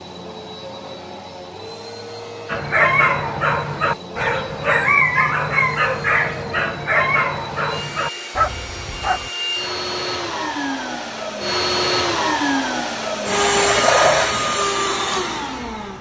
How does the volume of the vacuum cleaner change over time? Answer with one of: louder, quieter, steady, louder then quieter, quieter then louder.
louder.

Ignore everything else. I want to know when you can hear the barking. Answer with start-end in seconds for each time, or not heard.
2.5-9.3.